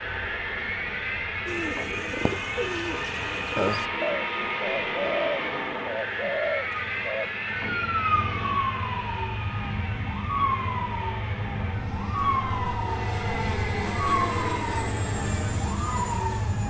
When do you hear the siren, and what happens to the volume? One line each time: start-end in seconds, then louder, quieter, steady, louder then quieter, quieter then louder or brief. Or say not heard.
0.0-16.6 louder.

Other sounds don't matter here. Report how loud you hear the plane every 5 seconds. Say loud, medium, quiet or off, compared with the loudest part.
loud, loud, loud, medium.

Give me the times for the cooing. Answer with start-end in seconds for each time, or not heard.
1.4-7.3.